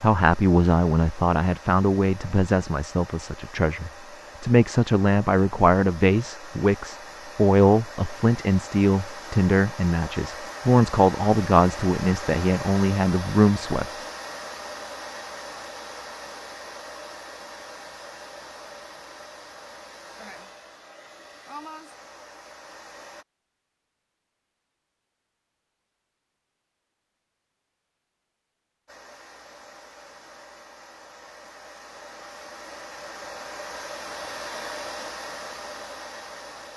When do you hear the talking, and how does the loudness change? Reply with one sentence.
The talking can be heard from 0.0 to 13.9 s, at a steady volume.